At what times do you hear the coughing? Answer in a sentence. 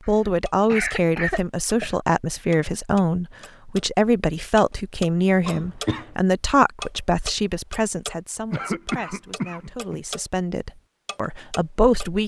You can hear the coughing from 0.1 to 2.0 s, from 5.5 to 6.1 s and from 8.5 to 9.9 s.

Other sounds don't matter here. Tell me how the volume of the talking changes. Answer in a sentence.
The volume of the talking goes down.